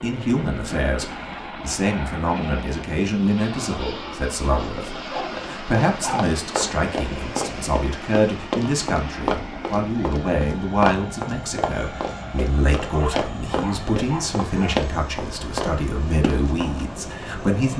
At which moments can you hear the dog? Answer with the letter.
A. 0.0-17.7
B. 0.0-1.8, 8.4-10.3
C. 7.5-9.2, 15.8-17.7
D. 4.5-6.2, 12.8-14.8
D.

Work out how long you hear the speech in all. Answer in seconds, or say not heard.
18 s.